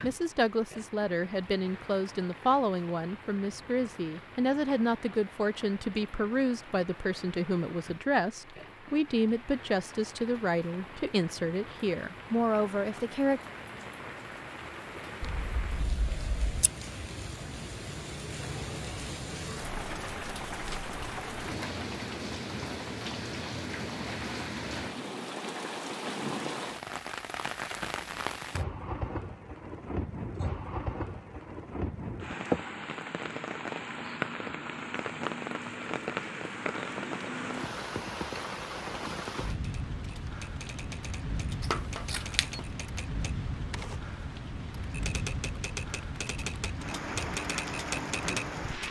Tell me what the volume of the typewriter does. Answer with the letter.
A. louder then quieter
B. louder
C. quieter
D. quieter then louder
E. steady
B.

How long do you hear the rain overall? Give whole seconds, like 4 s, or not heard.
49 s.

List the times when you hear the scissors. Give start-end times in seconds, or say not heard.
15.2-16.7, 41.6-42.7.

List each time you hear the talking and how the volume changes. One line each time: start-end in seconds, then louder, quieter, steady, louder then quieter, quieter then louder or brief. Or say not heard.
0.0-13.4 steady.